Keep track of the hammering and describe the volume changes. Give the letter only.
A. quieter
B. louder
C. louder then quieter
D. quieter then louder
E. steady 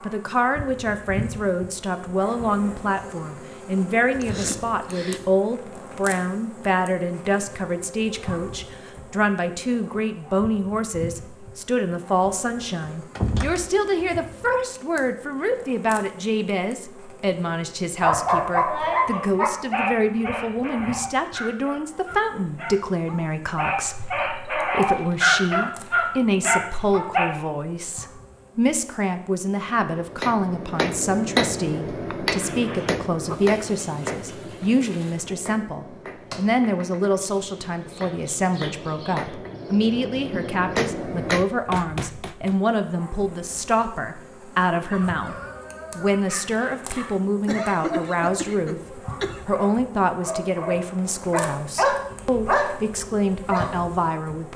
D.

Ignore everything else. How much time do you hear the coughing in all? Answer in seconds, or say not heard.
4 s.